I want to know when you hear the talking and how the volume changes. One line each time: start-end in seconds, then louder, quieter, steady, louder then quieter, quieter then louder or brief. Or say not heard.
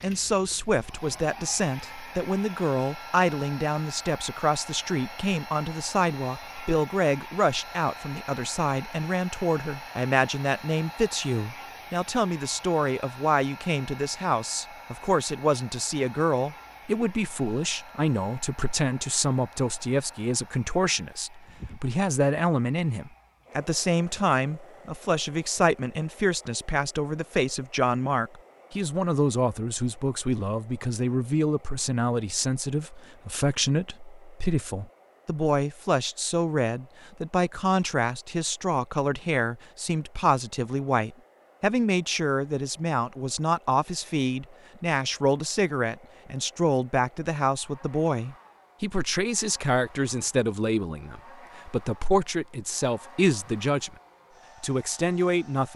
0.0-54.0 steady
54.6-55.7 brief.